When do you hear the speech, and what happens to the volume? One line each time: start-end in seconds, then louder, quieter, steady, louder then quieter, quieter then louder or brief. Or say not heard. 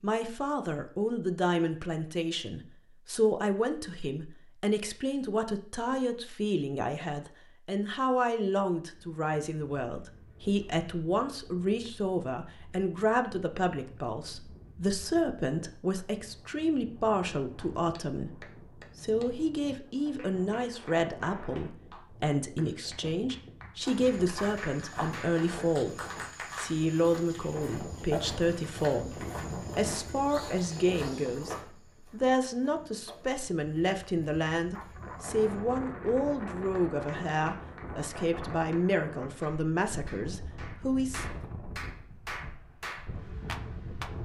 0.0-41.2 steady.